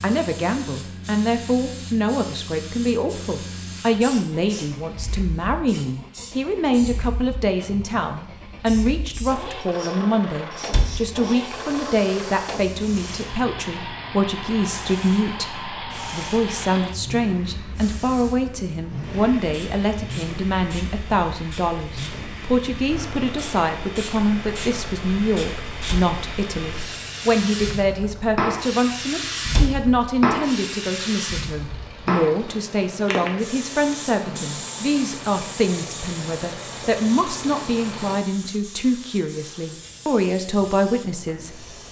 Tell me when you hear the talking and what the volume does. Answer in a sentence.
The talking can be heard from 0.0 to 41.8 s, at a steady volume.